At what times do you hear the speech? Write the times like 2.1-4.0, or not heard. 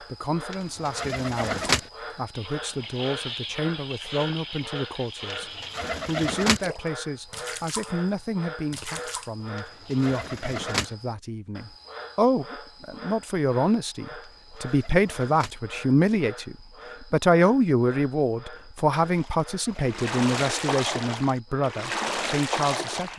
0.0-23.1.